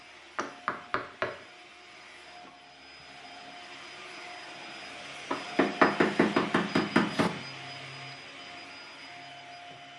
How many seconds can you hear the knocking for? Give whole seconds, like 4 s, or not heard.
3 s.